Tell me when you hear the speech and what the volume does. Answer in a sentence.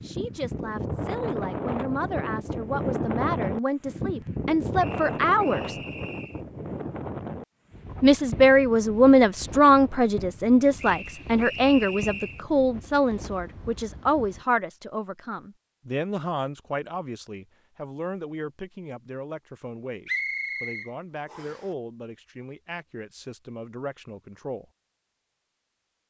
The speech can be heard from 0.0 to 5.8 s, getting louder; and from 8.0 to 24.6 s, getting quieter.